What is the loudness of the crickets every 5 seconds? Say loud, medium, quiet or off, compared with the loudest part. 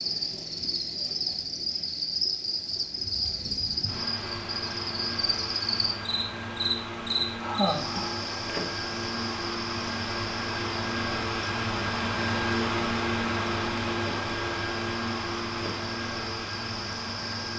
loud, loud, medium, medium.